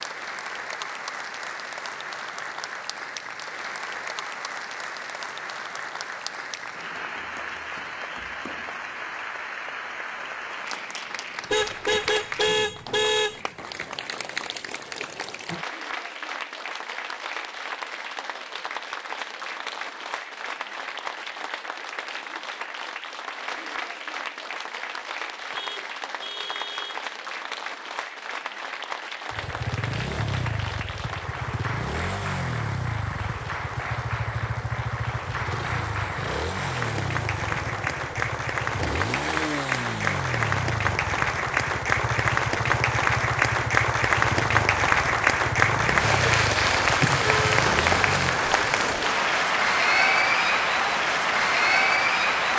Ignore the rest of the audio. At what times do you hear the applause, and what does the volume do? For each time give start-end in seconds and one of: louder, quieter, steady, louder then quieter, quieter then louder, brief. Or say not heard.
0.0-52.5 louder.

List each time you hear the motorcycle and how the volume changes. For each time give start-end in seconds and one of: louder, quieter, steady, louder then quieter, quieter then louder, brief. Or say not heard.
29.3-48.4 steady.